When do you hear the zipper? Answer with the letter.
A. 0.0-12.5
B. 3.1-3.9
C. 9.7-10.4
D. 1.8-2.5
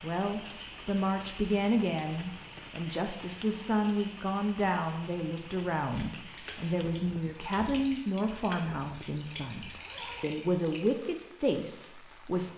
C.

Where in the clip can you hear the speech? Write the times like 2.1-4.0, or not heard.
0.0-12.5.